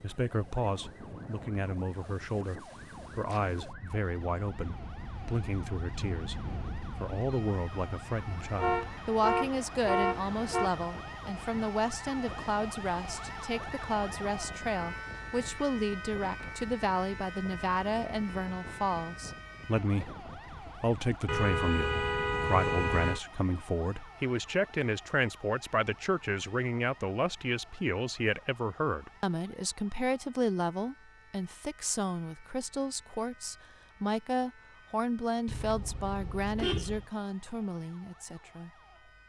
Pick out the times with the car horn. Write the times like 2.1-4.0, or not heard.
8.6-10.7, 21.2-23.2, 35.5-37.0.